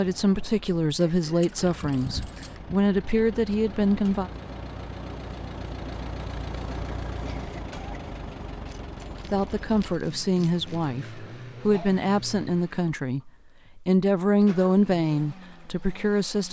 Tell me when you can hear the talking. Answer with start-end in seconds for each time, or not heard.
0.0-4.3, 9.3-16.4.